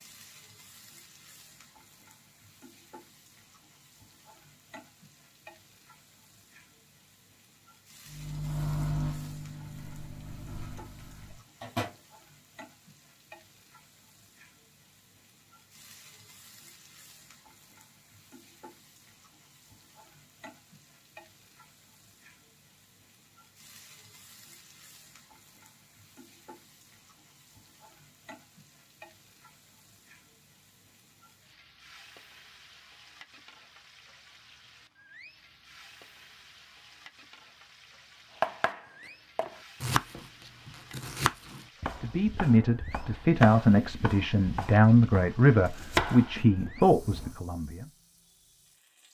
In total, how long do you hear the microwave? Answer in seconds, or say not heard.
4 s.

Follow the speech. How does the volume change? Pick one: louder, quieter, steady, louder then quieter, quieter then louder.
steady.